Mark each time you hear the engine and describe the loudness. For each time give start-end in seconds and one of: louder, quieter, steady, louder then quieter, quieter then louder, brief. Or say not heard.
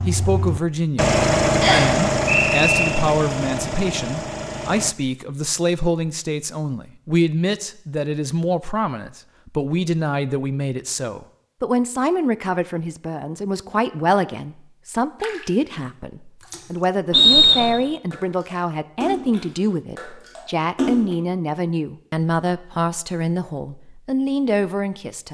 0.0-5.0 quieter.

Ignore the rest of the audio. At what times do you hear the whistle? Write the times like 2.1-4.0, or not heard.
1.6-2.9, 17.1-17.8.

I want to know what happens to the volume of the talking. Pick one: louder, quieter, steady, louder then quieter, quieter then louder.
steady.